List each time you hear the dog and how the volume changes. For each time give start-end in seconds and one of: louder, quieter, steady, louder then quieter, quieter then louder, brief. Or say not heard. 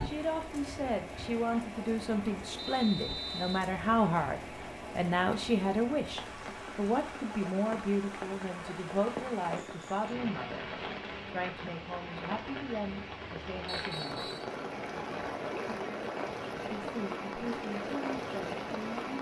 not heard.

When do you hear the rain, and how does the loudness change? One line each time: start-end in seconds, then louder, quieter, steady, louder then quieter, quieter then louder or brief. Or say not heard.
0.0-19.1 louder.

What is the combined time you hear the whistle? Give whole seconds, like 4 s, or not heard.
2 s.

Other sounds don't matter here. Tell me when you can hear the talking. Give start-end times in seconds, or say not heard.
0.0-14.3, 16.6-19.1.